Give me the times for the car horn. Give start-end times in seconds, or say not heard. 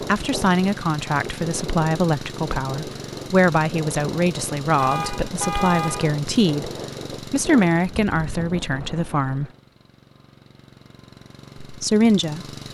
4.8-6.2.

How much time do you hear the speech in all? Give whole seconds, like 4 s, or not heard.
10 s.